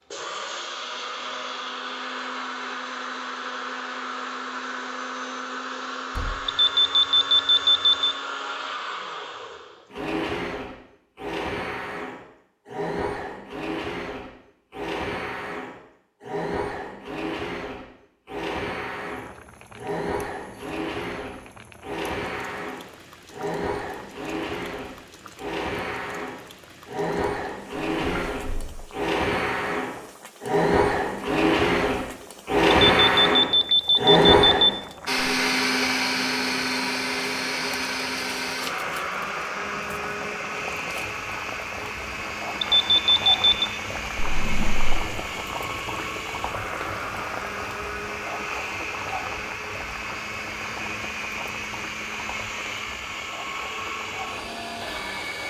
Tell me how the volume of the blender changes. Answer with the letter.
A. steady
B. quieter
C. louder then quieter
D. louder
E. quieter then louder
C.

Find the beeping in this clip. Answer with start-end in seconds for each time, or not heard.
6.5-8.2, 33.0-34.7, 42.6-43.7.